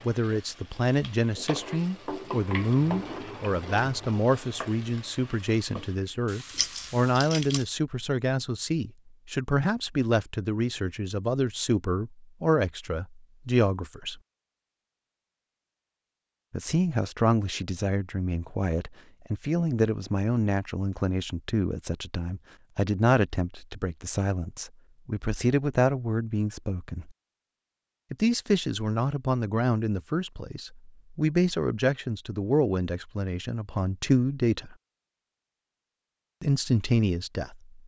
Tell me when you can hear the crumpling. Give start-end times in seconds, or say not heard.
6.5-7.7.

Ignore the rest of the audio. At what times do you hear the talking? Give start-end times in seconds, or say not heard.
0.1-14.2, 16.5-27.1, 28.1-34.8, 36.4-37.8.